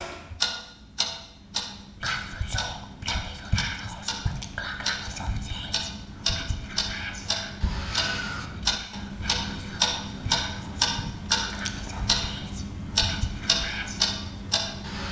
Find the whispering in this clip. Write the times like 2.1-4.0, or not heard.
2.0-14.0.